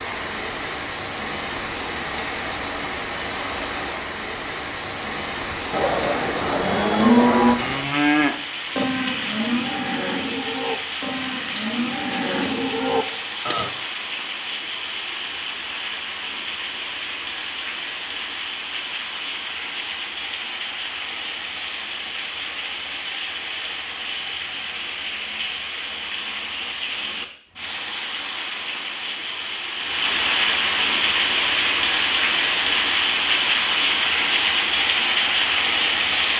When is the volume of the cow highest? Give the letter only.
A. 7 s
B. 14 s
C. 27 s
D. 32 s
A.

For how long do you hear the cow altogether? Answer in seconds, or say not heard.
8 s.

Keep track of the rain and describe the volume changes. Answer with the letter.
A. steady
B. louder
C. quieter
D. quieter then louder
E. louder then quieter
B.